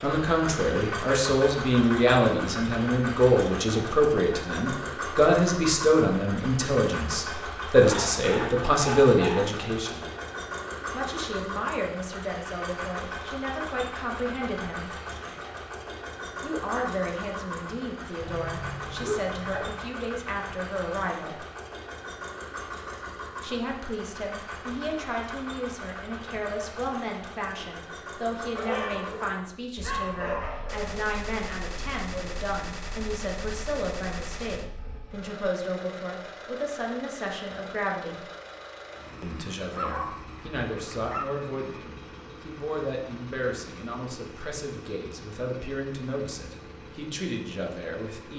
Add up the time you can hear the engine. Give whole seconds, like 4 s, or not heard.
48 s.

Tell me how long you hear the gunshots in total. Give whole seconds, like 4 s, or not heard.
4 s.